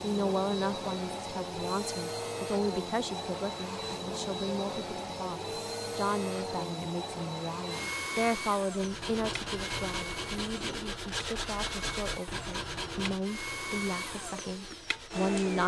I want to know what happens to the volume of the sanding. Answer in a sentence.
The loudness of the sanding goes down.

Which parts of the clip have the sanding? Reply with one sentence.
The sanding can be heard from 8.7 to 15.6 s.